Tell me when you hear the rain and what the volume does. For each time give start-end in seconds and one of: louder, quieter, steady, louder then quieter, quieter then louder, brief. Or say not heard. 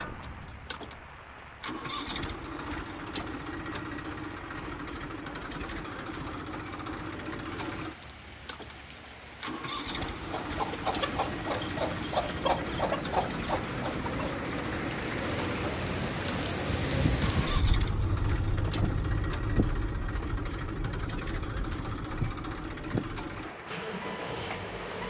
0.0-25.0 louder then quieter.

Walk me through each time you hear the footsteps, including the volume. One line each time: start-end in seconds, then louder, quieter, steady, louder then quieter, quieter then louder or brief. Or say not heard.
not heard.